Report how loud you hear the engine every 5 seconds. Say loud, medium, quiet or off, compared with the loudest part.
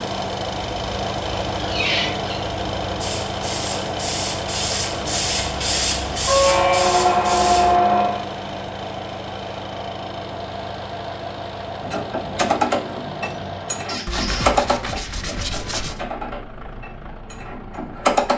loud, loud, medium, quiet.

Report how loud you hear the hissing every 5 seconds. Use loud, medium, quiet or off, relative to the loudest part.
loud, loud, off, off.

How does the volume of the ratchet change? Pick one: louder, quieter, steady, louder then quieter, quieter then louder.
quieter.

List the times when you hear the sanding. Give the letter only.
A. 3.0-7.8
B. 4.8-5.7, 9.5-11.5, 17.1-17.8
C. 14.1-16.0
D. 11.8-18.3
C.